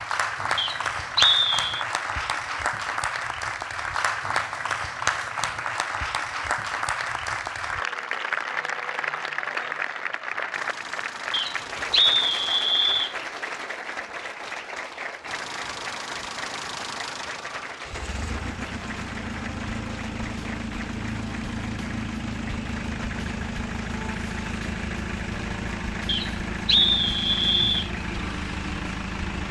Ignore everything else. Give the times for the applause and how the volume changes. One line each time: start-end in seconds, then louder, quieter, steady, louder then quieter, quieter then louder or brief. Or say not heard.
0.0-29.4 quieter.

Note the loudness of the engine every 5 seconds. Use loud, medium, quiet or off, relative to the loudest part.
off, off, medium, loud, loud, loud.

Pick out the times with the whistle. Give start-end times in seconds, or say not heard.
0.6-1.9, 11.3-13.2, 26.1-27.9.